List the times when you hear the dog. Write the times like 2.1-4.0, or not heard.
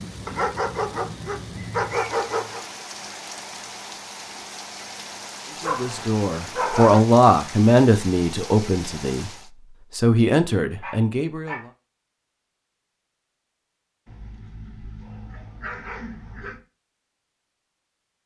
0.2-2.6, 5.6-7.0, 10.8-11.7, 14.1-16.6.